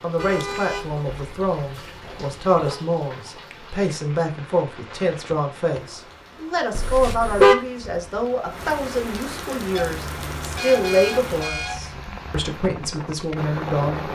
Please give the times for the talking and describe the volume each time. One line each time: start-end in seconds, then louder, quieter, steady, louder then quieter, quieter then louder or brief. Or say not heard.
0.0-14.0 steady.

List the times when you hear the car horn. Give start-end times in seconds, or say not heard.
0.1-2.9, 6.7-7.5, 9.8-12.1.